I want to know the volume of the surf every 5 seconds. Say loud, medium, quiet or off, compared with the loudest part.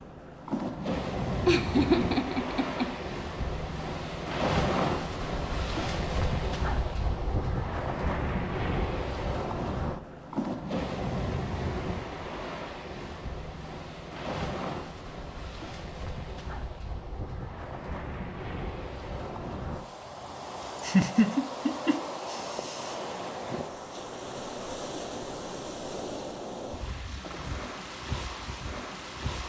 loud, loud, loud, medium, medium, medium.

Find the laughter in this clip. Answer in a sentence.
You can hear the laughter from 1.4 to 2.9 s and from 20.8 to 23.0 s.